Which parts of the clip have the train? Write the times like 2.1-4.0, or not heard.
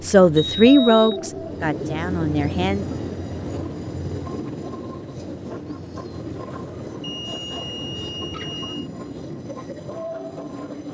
0.0-10.8.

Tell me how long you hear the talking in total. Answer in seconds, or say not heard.
3 s.